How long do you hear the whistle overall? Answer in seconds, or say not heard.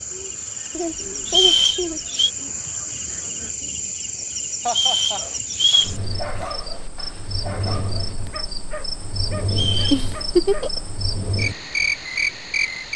3 s.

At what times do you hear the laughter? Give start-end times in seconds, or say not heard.
0.7-2.0, 4.7-5.2, 9.9-10.8.